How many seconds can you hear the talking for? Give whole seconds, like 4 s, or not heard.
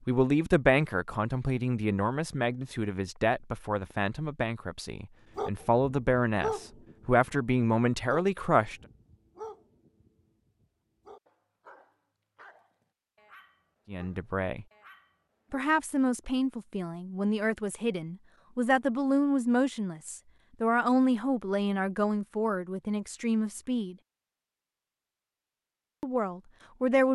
19 s.